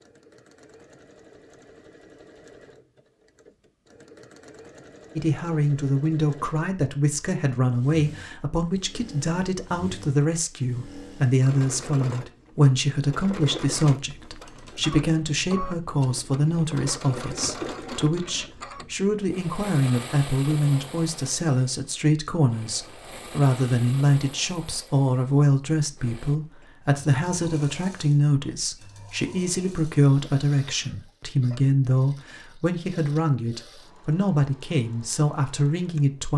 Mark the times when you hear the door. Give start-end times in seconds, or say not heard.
not heard.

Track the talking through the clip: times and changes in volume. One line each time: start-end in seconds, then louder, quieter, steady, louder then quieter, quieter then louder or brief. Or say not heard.
5.2-36.3 steady.